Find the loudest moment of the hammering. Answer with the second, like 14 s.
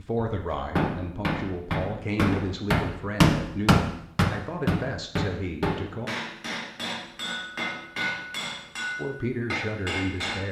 3 s.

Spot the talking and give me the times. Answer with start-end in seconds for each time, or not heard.
0.0-6.1, 8.9-10.4.